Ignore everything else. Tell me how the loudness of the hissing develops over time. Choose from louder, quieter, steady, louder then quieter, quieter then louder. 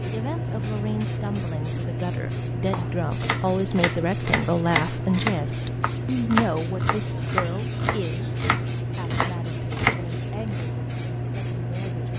steady.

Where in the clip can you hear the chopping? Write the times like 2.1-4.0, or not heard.
2.7-10.7.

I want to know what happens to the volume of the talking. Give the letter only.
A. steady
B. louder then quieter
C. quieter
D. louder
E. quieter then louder
B.